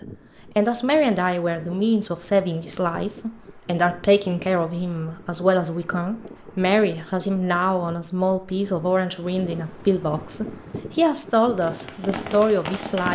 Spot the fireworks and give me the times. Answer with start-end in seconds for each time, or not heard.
11.6-13.1.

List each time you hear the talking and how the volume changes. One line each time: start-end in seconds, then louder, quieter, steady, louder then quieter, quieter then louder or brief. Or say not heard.
0.6-13.1 steady.